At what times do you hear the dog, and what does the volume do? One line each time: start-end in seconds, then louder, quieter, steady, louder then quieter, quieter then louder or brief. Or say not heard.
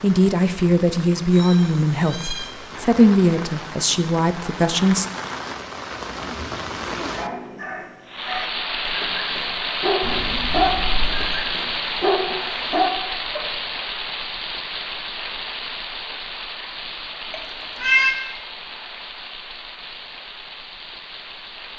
6.3-13.4 louder.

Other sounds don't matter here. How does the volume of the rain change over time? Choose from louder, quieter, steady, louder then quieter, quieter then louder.
louder then quieter.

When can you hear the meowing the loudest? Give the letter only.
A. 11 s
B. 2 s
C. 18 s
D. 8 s
C.